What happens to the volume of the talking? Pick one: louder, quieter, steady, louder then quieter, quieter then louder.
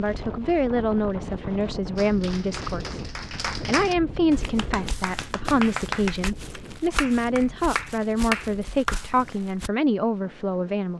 steady.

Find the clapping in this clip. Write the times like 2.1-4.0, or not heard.
1.9-9.0.